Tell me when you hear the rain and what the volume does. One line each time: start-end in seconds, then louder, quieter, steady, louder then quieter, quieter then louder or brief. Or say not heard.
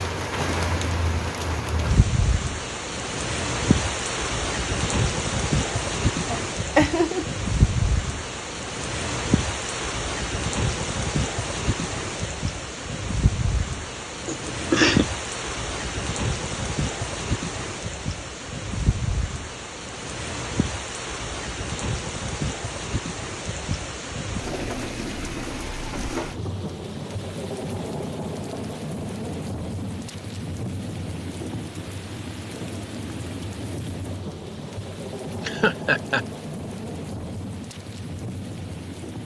0.0-39.2 quieter.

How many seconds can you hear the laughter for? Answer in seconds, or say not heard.
3 s.